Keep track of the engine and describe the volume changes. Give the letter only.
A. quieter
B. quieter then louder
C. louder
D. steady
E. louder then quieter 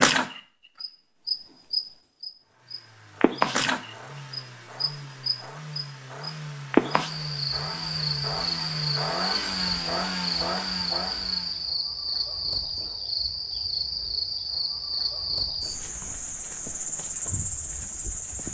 C.